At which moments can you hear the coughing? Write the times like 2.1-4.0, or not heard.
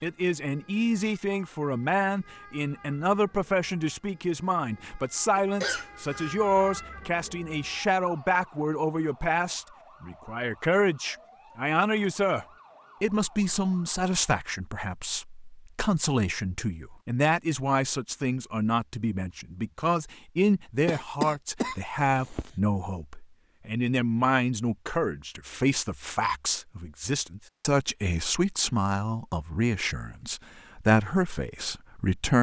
5.3-6.3, 20.9-22.5.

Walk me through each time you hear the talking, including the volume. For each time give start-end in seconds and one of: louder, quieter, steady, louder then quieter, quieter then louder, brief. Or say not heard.
0.0-32.3 steady.